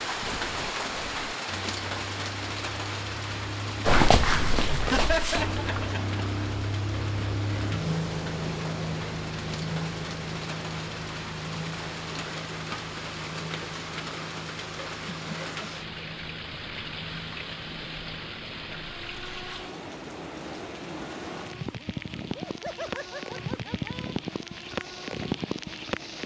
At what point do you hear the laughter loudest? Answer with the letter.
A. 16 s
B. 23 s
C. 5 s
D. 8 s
C.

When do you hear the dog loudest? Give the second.
4 s.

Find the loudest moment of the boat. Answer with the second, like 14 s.
8 s.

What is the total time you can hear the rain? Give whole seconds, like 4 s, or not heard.
26 s.